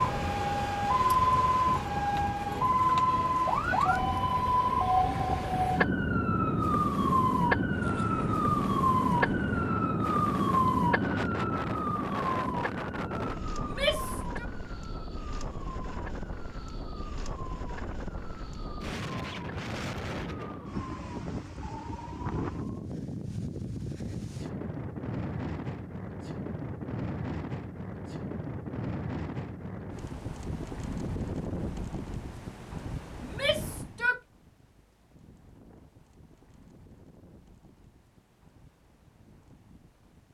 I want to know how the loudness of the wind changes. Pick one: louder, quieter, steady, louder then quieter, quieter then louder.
quieter.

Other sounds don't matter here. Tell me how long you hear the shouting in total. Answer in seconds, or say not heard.
2 s.